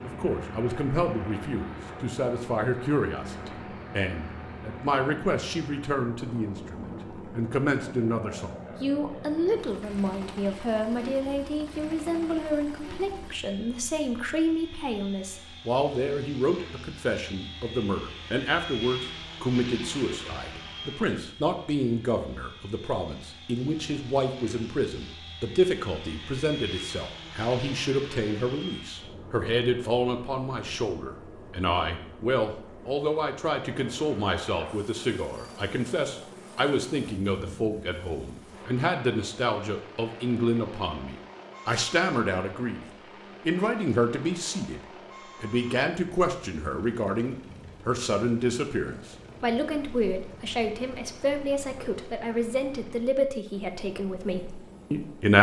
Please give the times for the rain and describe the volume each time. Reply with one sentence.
The rain can't be heard in this clip.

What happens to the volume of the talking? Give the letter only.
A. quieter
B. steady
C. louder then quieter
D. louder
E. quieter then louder
B.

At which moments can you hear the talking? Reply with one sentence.
You can hear the talking from 0.0 to 55.3 s.